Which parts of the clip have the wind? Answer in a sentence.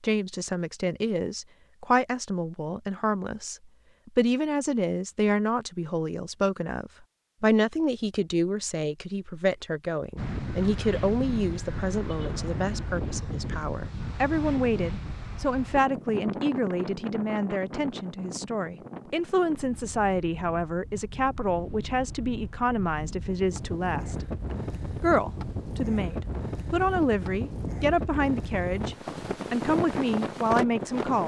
The wind can be heard from 10.2 to 31.2 s.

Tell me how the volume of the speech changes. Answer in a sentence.
The loudness of the speech stays about the same.